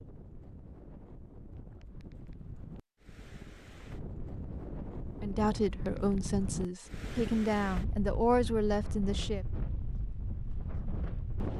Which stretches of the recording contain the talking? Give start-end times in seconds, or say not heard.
5.2-9.4.